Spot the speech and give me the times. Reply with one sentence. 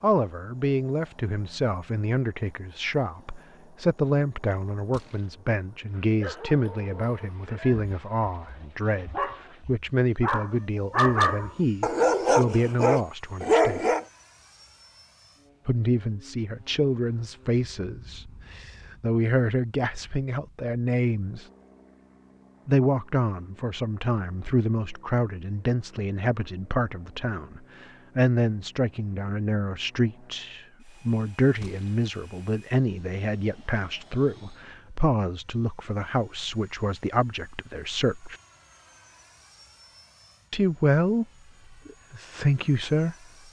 The speech can be heard from 0.0 to 13.8 s, from 15.7 to 21.4 s, from 22.6 to 38.4 s, from 40.5 to 41.2 s and from 41.9 to 43.1 s.